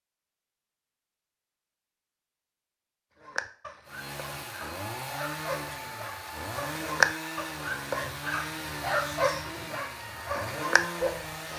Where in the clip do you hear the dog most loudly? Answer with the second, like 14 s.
7 s.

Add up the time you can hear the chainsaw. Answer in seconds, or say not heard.
8 s.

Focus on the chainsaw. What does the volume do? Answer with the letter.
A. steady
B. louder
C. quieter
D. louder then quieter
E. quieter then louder
A.